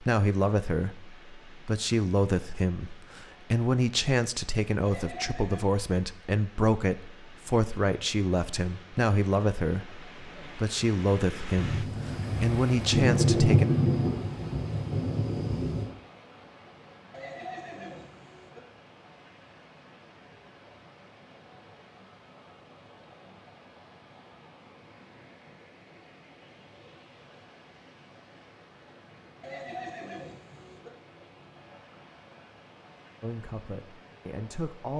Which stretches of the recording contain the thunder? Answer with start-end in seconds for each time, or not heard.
11.6-15.9.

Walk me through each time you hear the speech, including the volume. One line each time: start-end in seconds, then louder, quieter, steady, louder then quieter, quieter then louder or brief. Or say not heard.
0.0-13.7 steady
33.2-34.9 brief.